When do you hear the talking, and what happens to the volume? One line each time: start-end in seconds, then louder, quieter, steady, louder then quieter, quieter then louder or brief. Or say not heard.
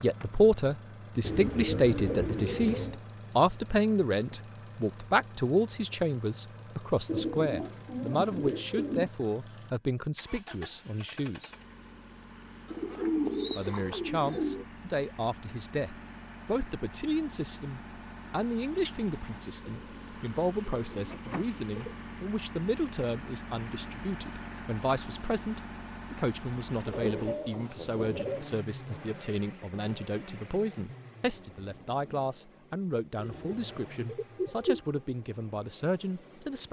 0.0-11.5 quieter
13.6-36.6 steady.